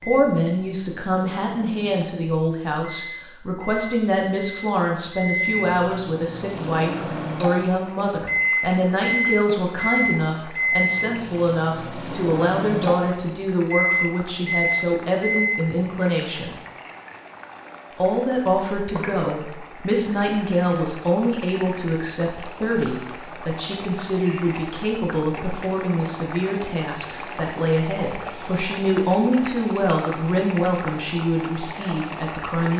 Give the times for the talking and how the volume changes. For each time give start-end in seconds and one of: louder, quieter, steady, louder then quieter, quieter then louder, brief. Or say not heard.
0.0-16.6 steady
17.9-32.7 steady.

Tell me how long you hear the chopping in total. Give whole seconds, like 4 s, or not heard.
not heard.